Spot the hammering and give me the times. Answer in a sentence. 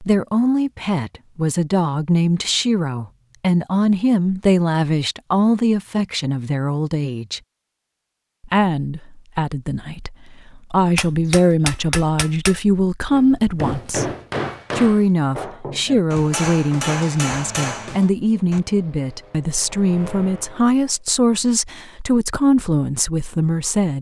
You can hear the hammering from 10.9 to 18.6 s.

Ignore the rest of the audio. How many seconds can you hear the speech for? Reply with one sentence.
You can hear the speech for 22 seconds altogether.